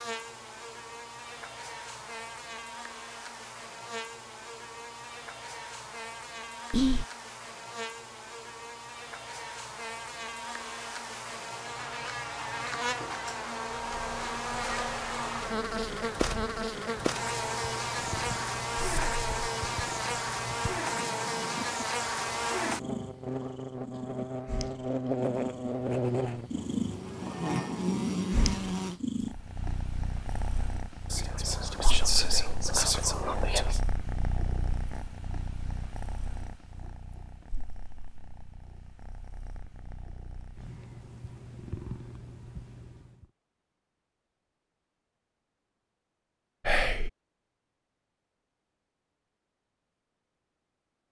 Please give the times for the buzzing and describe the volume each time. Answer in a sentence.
You can hear the buzzing from 0.0 to 29.0 s, getting louder.